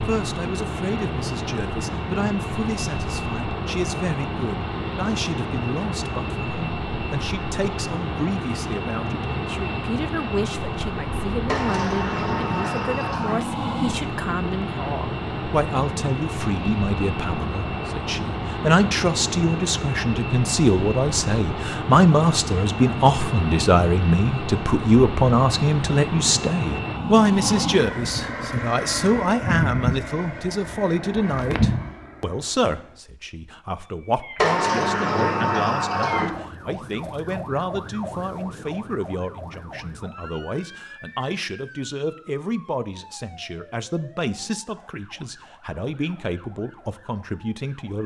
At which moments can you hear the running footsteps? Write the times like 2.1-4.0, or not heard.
not heard.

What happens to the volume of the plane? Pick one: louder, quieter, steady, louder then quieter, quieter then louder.
steady.